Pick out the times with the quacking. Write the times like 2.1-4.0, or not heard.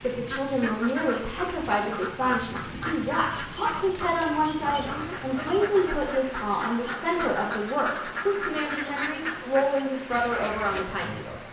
0.1-10.8.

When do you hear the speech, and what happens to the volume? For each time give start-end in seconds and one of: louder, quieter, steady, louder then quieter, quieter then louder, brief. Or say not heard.
0.0-11.4 steady.